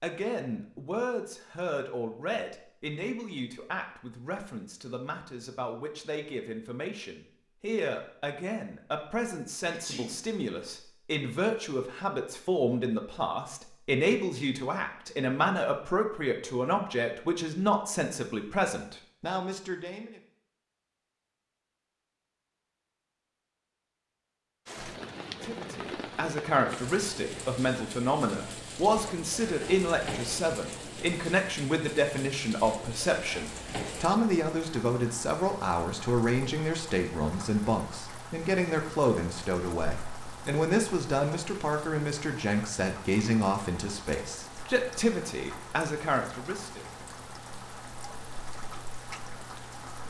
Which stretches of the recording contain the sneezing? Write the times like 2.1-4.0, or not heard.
9.7-10.2.